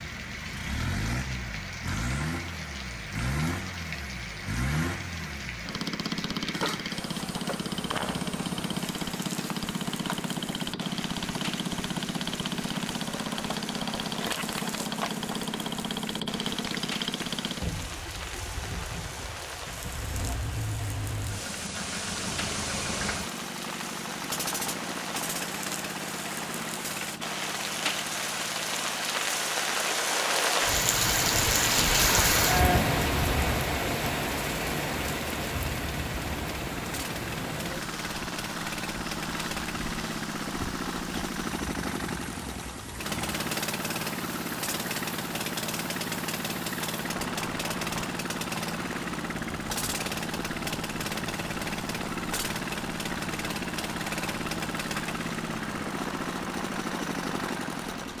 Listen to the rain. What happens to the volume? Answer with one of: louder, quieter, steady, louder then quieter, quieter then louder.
louder then quieter.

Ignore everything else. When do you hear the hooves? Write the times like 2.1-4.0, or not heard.
not heard.